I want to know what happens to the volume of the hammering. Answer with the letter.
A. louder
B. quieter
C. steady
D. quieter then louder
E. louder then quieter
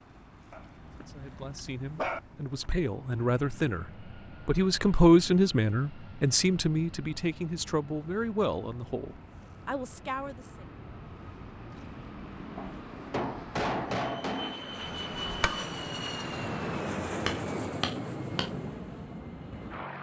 D.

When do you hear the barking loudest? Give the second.
2 s.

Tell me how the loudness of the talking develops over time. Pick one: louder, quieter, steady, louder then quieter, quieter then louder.
louder then quieter.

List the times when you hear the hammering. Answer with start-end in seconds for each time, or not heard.
12.6-18.5.